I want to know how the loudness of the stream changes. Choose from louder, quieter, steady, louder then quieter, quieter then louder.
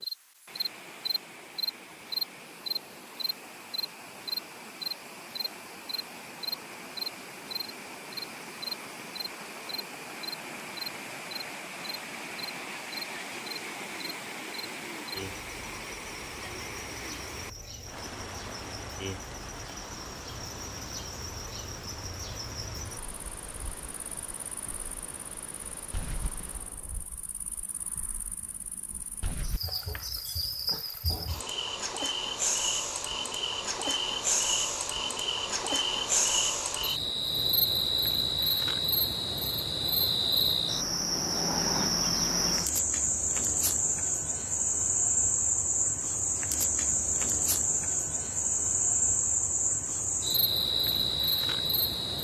louder then quieter.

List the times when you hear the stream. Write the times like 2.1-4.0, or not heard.
0.0-27.2.